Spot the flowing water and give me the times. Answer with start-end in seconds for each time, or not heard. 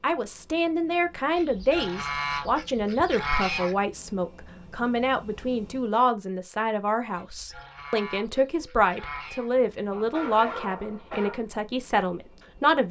not heard.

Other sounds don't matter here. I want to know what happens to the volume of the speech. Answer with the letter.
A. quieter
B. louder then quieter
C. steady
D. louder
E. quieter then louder
C.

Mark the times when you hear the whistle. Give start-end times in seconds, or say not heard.
not heard.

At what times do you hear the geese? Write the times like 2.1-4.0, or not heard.
1.4-3.8, 7.2-9.5.